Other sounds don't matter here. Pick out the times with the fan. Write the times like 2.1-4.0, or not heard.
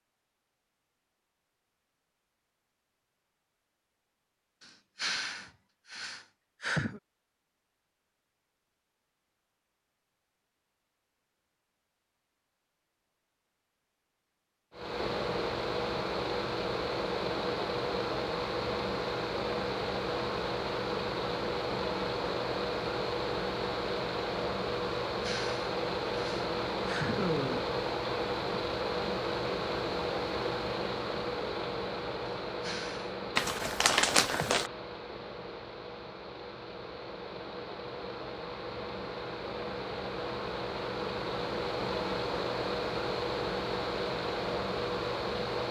14.7-45.6.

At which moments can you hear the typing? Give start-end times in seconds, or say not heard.
not heard.